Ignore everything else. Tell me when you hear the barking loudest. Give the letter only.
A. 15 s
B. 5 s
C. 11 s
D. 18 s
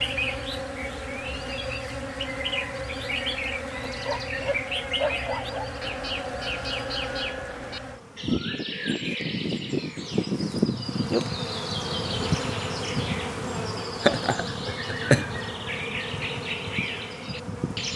B.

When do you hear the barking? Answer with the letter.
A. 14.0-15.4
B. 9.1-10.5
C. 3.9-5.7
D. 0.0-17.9
C.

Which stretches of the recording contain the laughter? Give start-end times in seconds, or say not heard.
14.0-15.4.